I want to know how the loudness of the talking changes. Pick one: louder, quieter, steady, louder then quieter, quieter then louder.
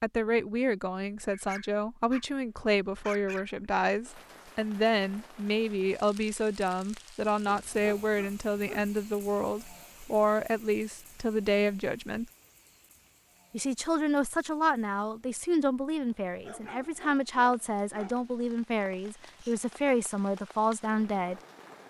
steady.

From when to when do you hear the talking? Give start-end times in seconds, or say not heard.
0.0-12.3, 13.5-21.4.